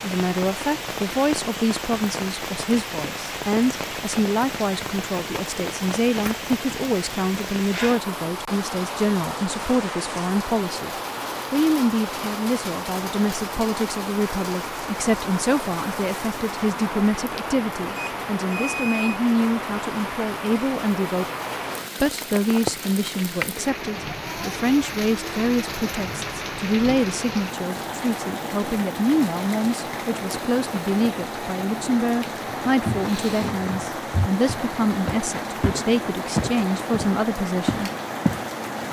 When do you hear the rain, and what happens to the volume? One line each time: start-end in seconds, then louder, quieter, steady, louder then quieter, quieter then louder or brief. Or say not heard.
0.0-38.8 steady.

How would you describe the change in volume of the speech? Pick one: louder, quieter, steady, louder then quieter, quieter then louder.
steady.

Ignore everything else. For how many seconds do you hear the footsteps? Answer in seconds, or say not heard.
6 s.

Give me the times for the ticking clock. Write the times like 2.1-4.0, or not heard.
not heard.